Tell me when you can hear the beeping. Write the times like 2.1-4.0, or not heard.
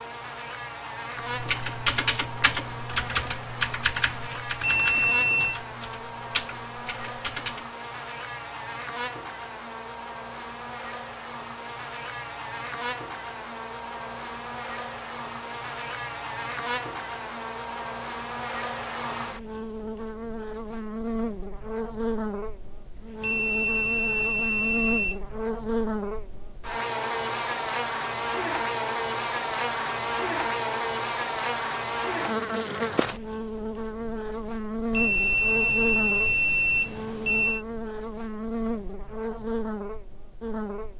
4.6-5.6, 23.2-25.2, 34.9-37.6.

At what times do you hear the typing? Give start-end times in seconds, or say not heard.
1.2-7.7.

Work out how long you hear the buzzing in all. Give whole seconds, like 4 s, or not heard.
41 s.